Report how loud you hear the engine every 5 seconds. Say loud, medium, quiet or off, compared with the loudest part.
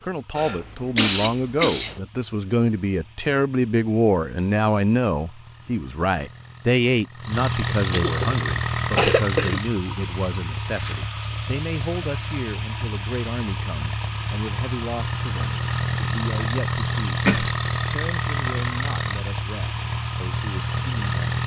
quiet, loud, medium, loud, loud.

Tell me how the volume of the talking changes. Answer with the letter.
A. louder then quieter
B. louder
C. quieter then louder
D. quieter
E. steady
D.